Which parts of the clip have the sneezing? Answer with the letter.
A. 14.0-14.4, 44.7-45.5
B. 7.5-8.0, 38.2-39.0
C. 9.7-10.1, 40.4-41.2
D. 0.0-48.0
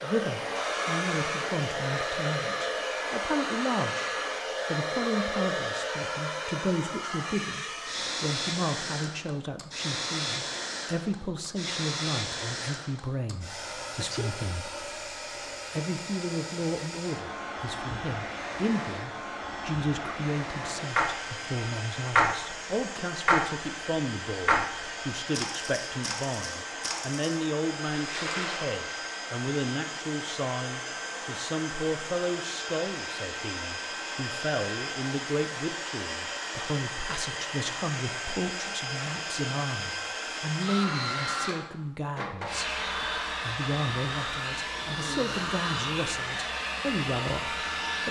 A.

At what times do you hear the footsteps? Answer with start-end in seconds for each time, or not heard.
not heard.